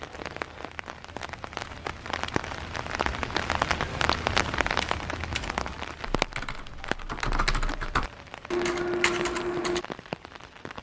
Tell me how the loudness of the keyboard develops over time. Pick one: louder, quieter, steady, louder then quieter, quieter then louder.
louder.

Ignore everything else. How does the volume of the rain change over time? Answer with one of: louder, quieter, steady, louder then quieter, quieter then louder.
louder then quieter.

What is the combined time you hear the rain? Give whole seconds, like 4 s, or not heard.
11 s.